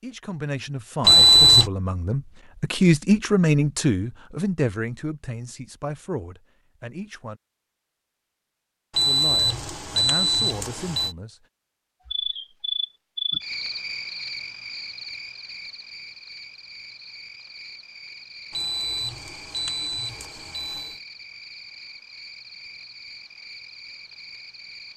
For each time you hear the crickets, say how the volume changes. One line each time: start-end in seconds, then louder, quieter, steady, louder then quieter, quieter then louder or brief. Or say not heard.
12.1-24.9 quieter.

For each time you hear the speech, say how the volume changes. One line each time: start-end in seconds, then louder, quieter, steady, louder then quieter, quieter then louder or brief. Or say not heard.
0.0-7.4 louder then quieter
9.0-11.4 brief.